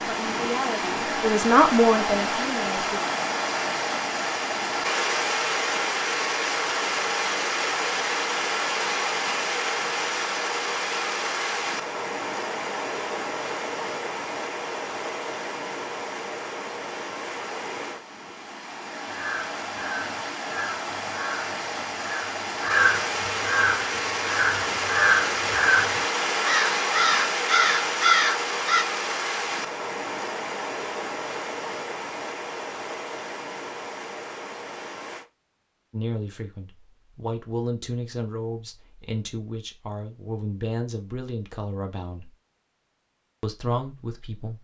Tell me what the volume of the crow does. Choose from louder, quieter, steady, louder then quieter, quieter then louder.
louder.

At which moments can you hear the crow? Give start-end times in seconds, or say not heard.
19.1-28.9.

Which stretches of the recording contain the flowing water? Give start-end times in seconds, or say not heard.
0.0-35.2.